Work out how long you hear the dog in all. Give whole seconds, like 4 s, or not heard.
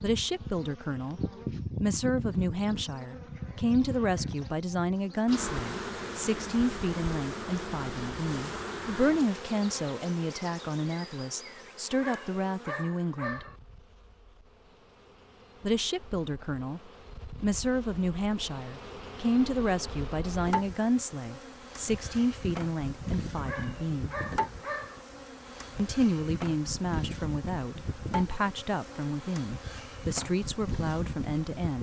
3 s.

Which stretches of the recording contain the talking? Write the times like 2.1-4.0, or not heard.
0.0-13.4, 15.6-16.8, 17.4-24.1, 25.8-31.7.